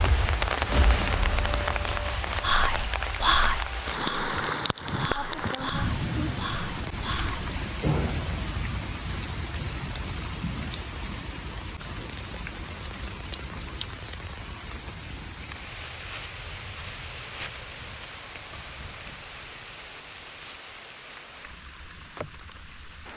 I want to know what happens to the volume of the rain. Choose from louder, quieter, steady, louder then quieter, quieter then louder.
quieter.